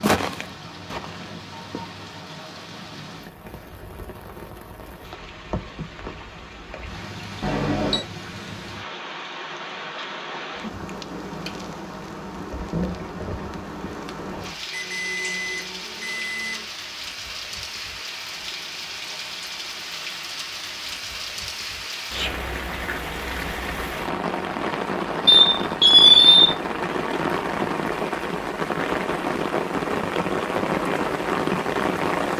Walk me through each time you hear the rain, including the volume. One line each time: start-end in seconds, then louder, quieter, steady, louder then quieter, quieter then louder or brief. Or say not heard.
0.0-32.3 louder.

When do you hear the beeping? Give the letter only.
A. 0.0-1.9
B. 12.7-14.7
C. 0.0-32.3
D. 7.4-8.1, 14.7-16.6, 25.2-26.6
D.